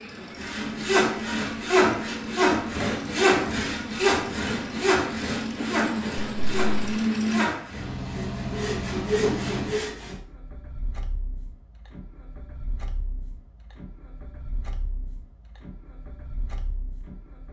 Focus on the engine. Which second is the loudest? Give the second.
7 s.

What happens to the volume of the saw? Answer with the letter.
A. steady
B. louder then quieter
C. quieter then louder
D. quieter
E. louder
D.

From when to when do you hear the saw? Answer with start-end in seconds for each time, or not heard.
0.3-10.2.